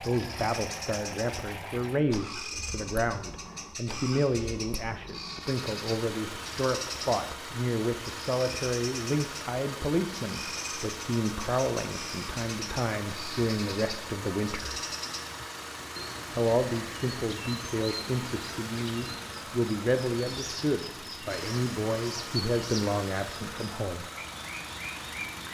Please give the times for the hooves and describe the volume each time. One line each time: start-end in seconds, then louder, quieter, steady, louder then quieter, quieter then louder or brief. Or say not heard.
not heard.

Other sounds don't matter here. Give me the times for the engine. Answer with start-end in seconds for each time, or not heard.
0.0-25.5.